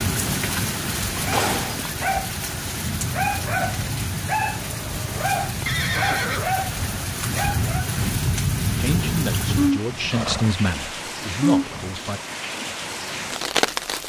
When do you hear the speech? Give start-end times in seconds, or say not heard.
8.7-12.2.